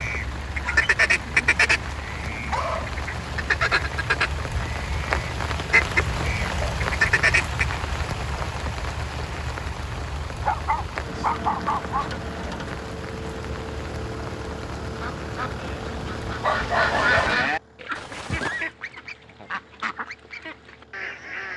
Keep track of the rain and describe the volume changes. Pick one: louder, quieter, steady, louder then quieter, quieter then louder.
louder then quieter.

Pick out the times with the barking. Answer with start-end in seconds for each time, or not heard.
0.6-3.5, 10.4-12.1, 16.4-17.4.